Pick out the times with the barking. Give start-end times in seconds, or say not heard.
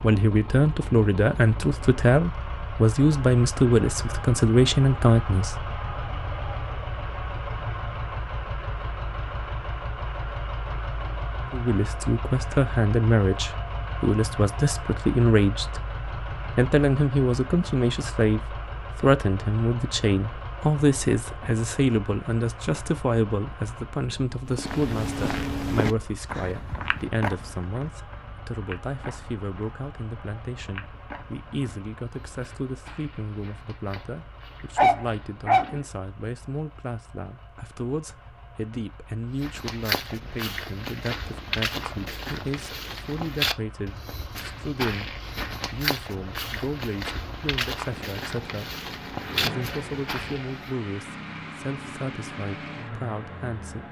34.8-35.8.